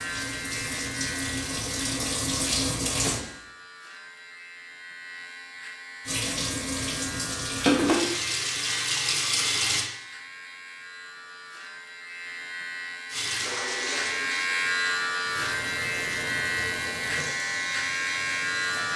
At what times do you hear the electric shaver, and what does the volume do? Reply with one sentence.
You can hear the electric shaver from 0.0 to 18.9 s, getting louder.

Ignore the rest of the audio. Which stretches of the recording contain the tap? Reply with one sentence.
The tap can be heard from 0.0 to 3.2 s, from 6.0 to 9.9 s and from 13.1 to 18.9 s.